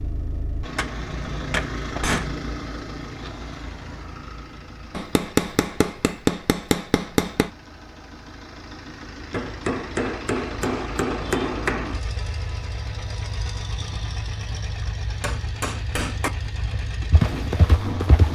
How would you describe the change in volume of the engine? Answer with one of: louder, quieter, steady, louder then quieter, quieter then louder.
quieter then louder.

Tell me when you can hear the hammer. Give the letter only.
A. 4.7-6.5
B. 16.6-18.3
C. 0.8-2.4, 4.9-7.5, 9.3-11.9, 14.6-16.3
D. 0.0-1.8
C.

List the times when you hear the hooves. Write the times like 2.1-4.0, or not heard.
16.6-18.3.